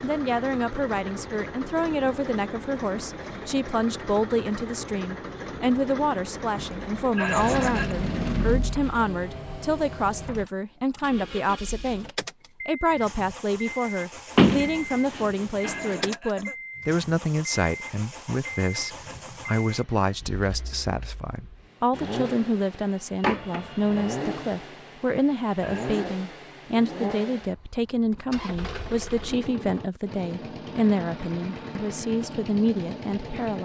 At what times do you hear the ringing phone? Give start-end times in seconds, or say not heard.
not heard.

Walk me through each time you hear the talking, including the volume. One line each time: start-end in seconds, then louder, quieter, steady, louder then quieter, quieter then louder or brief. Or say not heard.
0.0-33.6 steady.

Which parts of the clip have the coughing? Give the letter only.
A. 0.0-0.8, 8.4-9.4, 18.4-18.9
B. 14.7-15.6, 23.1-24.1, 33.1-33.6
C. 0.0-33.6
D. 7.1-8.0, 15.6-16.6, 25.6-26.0
D.